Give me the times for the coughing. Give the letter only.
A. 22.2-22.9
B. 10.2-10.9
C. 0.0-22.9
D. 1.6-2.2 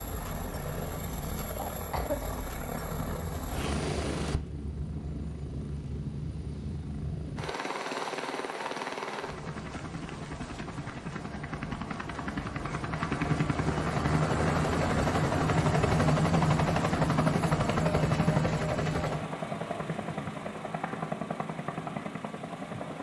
D.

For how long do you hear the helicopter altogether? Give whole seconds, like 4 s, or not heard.
23 s.